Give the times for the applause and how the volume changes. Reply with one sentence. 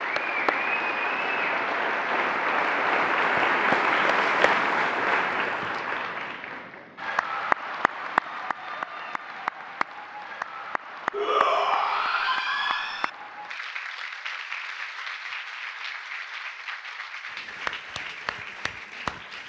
You can hear the applause from 0.0 to 19.4 s, getting quieter.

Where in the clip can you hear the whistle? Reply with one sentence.
You can't hear the whistle here.